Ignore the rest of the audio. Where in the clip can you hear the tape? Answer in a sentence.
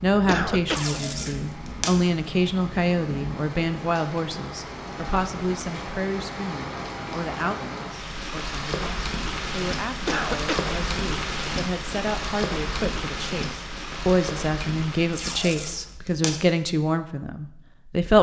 The tape can be heard from 0.7 to 2.0 s and from 15.1 to 16.4 s.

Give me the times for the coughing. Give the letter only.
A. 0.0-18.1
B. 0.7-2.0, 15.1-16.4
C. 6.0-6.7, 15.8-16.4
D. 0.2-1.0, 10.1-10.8
D.